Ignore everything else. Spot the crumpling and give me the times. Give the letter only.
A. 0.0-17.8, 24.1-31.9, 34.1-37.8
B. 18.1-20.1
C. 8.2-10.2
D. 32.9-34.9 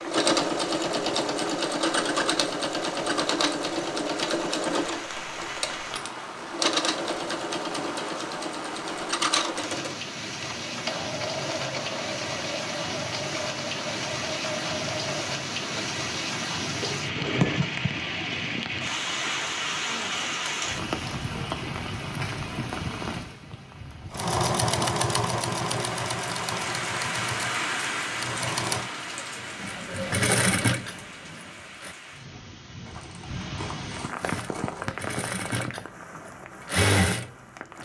D.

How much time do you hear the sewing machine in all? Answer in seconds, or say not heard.
29 s.